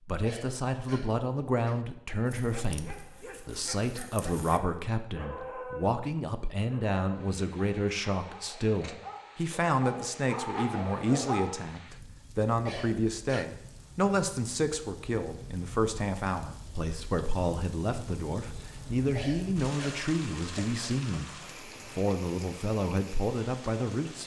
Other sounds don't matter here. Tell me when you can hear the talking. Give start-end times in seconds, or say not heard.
0.1-24.2.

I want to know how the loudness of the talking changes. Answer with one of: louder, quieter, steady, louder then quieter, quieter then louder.
steady.